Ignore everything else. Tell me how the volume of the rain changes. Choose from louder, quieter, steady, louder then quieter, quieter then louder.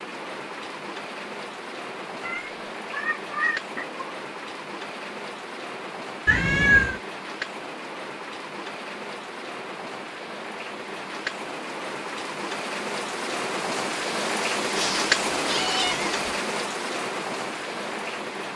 louder.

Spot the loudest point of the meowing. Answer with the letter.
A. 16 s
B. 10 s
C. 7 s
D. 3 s
C.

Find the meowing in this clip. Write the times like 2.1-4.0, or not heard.
2.2-4.0, 6.2-7.0, 14.8-16.1.